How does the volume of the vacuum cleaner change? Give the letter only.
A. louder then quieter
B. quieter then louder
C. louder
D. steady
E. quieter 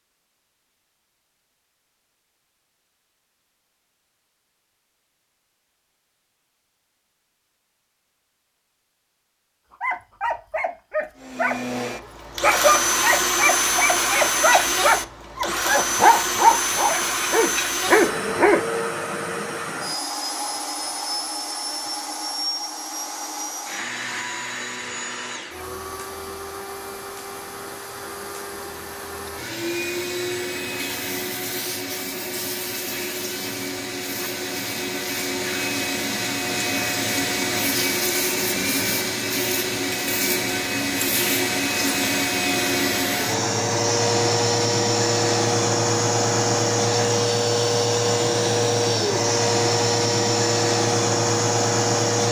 B.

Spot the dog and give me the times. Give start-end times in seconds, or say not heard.
9.8-11.6, 12.4-18.6.